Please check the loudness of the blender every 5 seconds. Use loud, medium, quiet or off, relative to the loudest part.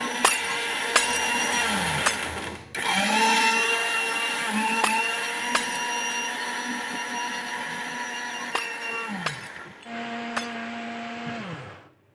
loud, medium, medium.